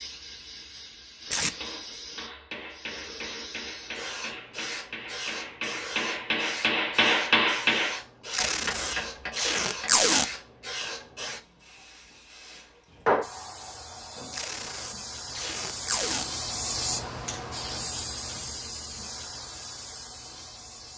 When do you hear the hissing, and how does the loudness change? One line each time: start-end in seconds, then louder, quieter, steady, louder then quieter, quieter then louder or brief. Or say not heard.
0.0-20.9 louder.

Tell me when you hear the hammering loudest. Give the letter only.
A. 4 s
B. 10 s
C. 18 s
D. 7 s
D.